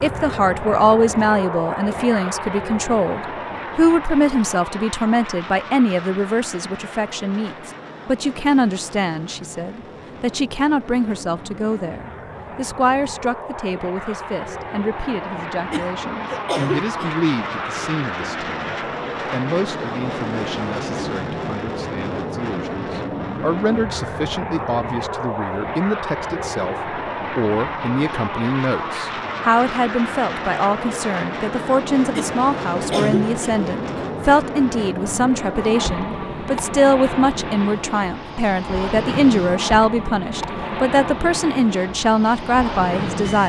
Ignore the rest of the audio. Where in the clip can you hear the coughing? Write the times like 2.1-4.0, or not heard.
15.7-17.2, 32.1-34.0.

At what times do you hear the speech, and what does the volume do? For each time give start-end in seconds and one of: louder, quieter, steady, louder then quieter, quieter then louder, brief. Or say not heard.
0.0-43.4 quieter then louder.